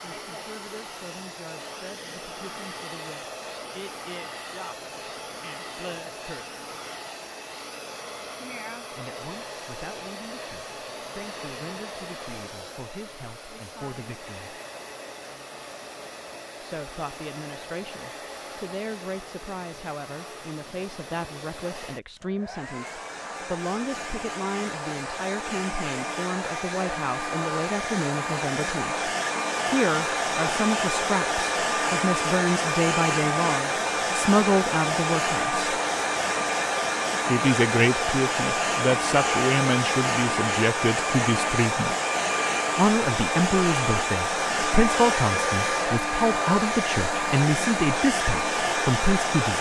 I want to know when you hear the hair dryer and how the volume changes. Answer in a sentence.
The hair dryer can be heard from 0.0 to 49.5 s, getting louder.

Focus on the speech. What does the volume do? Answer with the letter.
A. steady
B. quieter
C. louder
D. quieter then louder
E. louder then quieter
C.